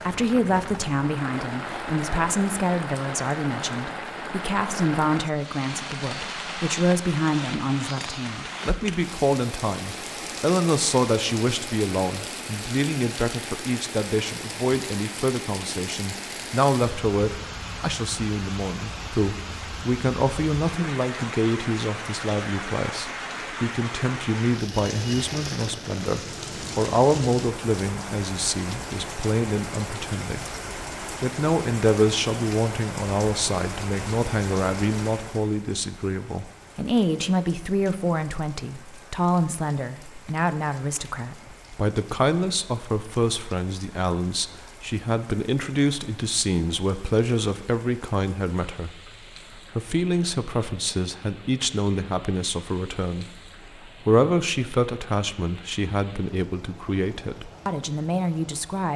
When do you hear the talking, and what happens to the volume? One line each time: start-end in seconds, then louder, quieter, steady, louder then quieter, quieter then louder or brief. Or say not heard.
0.1-30.6 steady
31.2-58.9 steady.